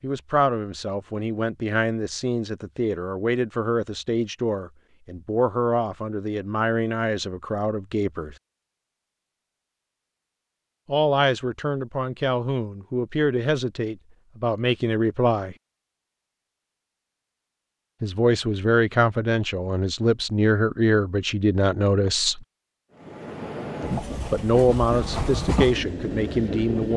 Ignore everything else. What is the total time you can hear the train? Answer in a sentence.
The train can be heard for 4 seconds in total.